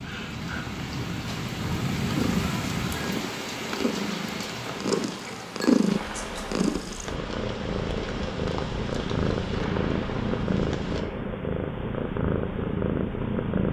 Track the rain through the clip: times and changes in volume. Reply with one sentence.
The rain can be heard from 0.0 to 11.1 s, getting quieter.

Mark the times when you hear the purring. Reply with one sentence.
You can hear the purring from 2.0 to 13.6 s.